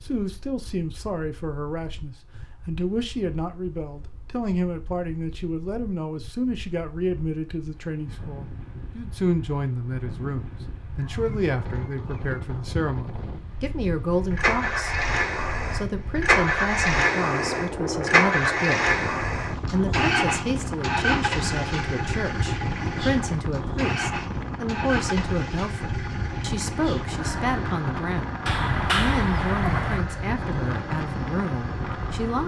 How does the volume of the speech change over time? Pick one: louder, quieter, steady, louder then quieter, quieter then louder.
steady.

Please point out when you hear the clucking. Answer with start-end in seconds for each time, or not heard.
11.0-12.8, 28.4-30.1.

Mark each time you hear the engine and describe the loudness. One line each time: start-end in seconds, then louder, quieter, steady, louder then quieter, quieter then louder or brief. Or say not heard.
14.3-32.4 quieter.